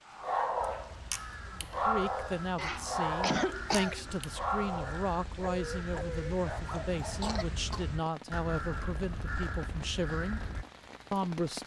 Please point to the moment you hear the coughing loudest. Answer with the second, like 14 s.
3 s.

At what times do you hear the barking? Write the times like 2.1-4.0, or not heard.
0.1-7.4.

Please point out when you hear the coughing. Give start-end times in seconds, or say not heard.
2.5-4.2, 7.0-7.8.